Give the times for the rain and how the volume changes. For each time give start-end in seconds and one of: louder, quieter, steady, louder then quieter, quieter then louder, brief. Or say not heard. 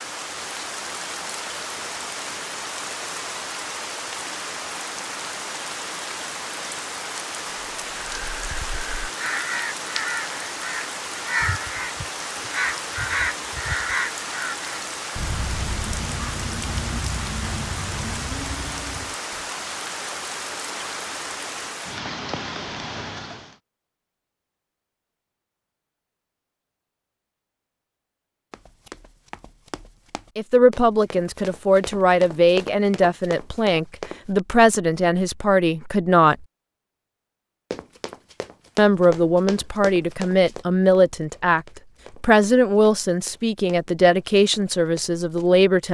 0.0-23.6 steady.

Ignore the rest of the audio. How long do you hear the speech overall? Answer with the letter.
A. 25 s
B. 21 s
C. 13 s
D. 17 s
C.